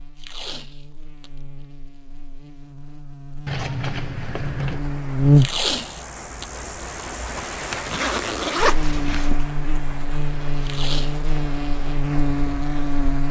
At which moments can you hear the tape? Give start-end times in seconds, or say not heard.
0.1-1.3, 5.3-6.6, 10.6-11.2.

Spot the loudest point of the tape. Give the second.
6 s.